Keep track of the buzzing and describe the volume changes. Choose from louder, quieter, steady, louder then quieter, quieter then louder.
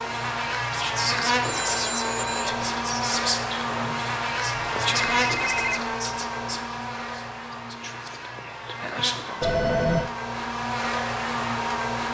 quieter then louder.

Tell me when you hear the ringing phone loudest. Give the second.
10 s.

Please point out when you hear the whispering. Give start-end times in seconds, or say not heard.
0.7-9.6.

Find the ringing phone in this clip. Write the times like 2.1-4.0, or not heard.
1.4-2.5, 5.2-5.8, 9.4-10.1.